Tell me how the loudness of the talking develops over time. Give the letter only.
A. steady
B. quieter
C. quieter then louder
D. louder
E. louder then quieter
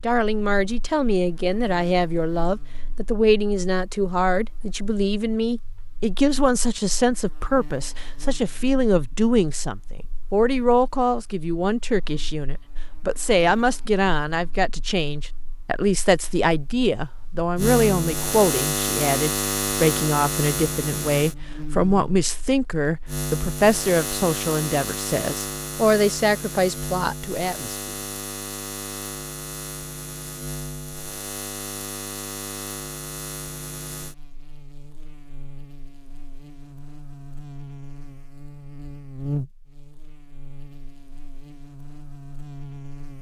A.